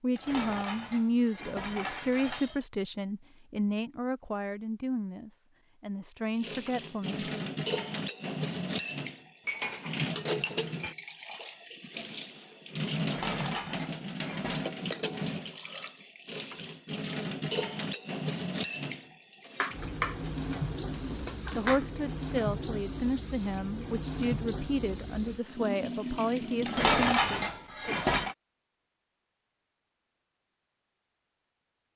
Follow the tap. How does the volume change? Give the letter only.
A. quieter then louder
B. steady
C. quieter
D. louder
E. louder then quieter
B.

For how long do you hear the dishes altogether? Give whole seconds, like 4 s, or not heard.
10 s.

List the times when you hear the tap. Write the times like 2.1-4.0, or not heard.
6.3-26.9.